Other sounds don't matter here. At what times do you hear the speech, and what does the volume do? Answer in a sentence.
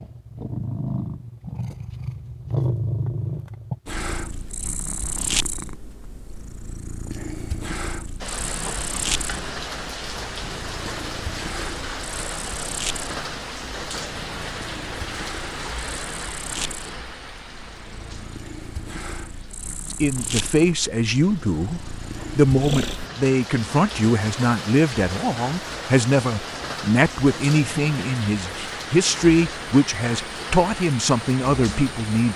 You can hear the speech from 19.9 to 32.3 s, at a steady volume.